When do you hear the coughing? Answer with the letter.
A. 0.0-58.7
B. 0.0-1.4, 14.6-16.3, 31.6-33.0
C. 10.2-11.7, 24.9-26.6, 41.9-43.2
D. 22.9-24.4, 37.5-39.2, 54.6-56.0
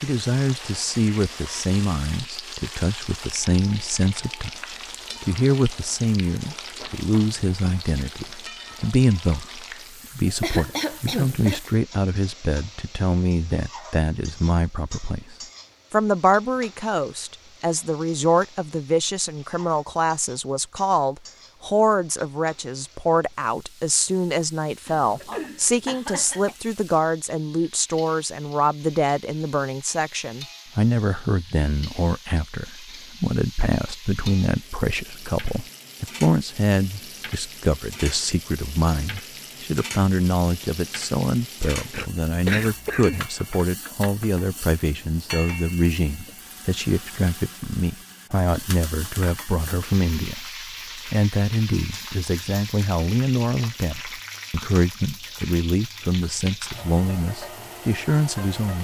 C.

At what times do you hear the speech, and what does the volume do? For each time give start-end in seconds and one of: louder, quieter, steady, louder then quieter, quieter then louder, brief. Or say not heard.
0.0-58.7 steady.